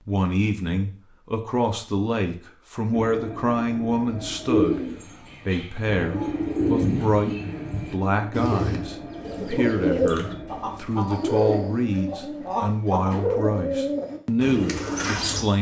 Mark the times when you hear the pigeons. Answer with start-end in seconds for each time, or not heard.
4.5-15.4.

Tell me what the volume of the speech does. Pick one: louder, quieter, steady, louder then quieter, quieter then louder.
steady.